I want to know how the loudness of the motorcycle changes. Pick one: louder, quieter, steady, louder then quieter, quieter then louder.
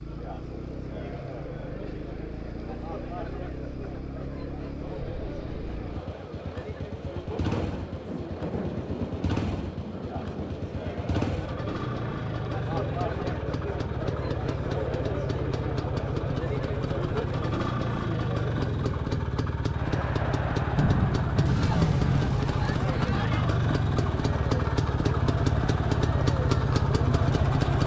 louder.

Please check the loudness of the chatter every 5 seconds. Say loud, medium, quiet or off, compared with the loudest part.
medium, medium, loud, loud, loud, loud.